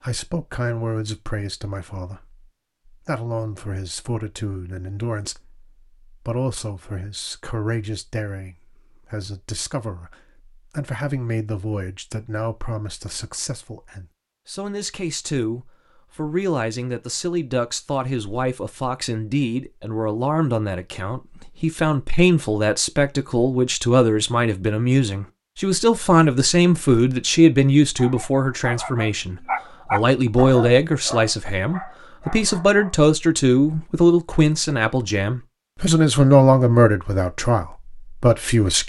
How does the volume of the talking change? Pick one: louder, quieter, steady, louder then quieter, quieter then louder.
louder.